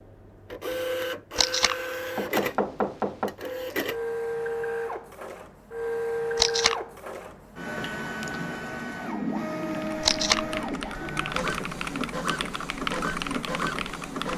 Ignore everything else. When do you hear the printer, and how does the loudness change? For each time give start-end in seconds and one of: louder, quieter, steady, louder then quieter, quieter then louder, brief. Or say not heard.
0.0-14.3 steady.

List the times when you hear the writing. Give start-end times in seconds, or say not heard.
not heard.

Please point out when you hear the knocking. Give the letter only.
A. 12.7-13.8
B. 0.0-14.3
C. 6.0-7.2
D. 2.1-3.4
D.